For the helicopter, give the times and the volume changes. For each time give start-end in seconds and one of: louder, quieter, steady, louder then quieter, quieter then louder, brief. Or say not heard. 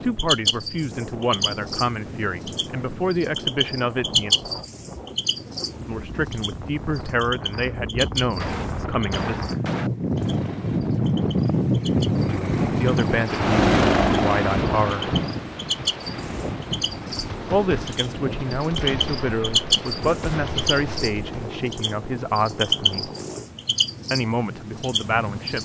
10.1-23.5 louder then quieter.